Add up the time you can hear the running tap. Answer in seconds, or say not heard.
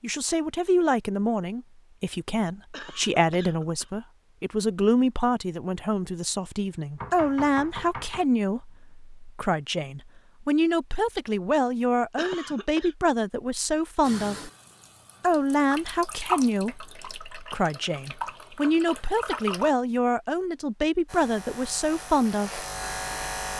6 s.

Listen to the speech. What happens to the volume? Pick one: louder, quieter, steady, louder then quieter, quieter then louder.
steady.